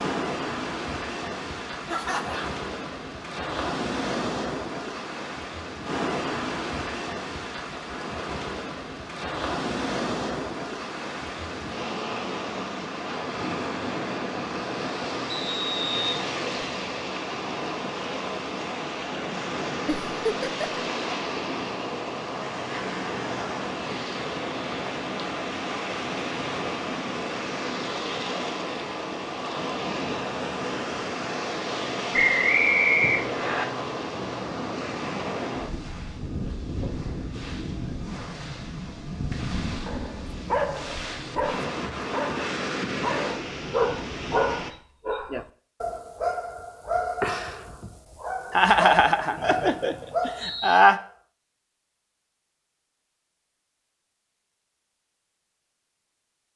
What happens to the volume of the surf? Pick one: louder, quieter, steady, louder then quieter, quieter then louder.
steady.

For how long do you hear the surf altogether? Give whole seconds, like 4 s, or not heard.
45 s.